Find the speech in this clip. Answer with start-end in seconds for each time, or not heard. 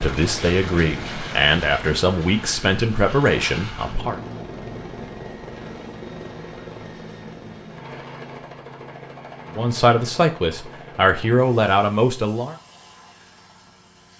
0.0-4.2, 9.6-12.6.